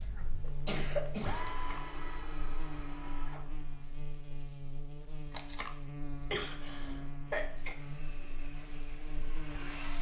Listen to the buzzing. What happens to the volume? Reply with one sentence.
The loudness of the buzzing stays about the same.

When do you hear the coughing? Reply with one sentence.
The coughing can be heard from 0.5 to 1.4 s and from 6.3 to 7.8 s.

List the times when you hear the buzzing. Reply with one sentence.
You can hear the buzzing from 0.0 to 9.9 s.